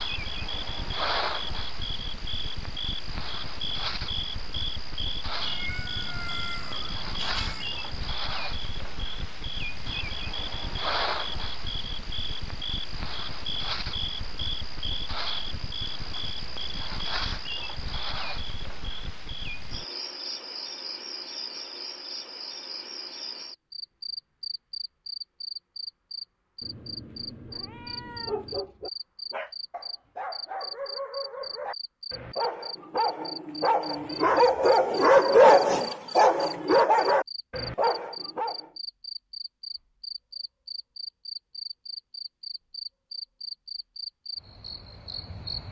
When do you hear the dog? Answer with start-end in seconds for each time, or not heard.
28.1-38.7.